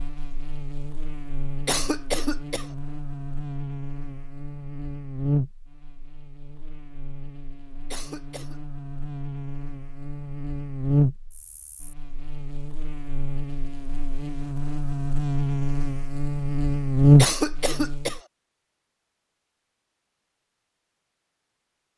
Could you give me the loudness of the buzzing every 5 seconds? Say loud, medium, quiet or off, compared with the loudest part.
quiet, quiet, medium, loud, off.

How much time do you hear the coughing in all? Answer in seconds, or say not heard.
3 s.